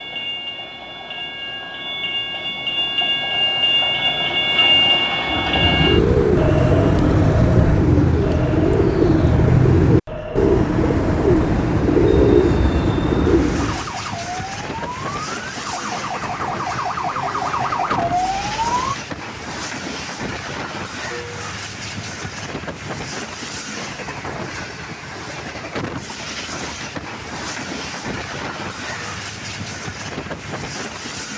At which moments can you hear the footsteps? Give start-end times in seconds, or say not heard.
not heard.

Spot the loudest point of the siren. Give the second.
18 s.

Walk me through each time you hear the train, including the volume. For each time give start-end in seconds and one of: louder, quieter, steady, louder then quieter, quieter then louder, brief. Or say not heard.
0.0-31.3 quieter.